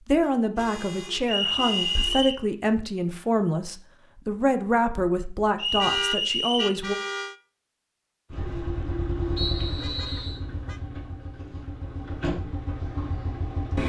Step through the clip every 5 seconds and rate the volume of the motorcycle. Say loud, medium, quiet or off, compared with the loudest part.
off, loud, loud.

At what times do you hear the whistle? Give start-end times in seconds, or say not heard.
1.2-2.4, 5.5-6.8, 9.3-10.4.